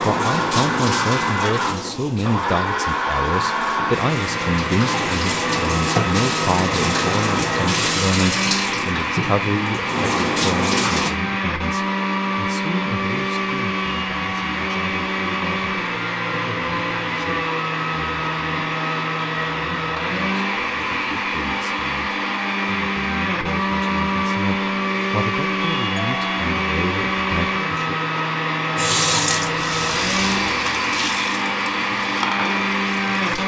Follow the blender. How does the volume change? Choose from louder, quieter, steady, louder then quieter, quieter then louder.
steady.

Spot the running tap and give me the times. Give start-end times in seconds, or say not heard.
0.0-11.2, 28.8-33.4.